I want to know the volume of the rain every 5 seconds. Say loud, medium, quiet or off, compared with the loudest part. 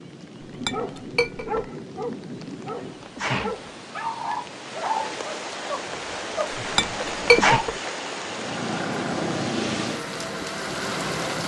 medium, loud, loud.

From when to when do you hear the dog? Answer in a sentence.
You can hear the dog from 0.7 to 7.7 s.